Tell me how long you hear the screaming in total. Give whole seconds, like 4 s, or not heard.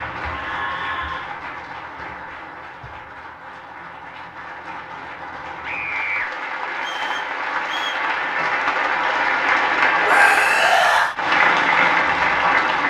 3 s.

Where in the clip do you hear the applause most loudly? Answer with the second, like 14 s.
12 s.